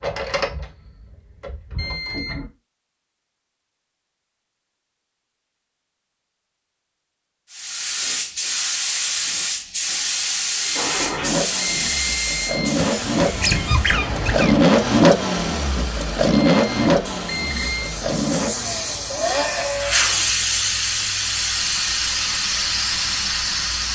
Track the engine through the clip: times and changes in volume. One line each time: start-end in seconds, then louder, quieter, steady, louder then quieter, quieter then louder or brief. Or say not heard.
0.0-2.5 brief
10.8-20.1 louder then quieter.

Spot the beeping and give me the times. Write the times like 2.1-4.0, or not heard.
1.8-2.5, 10.6-12.8, 16.3-17.9.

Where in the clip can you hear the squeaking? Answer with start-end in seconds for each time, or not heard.
12.8-14.6.